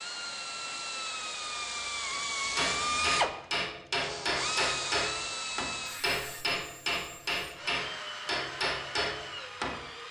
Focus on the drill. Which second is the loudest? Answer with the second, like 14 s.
3 s.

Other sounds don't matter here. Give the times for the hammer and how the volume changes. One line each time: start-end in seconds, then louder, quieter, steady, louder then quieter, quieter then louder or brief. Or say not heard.
2.5-9.9 steady.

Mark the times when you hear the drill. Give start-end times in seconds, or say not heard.
0.0-10.0.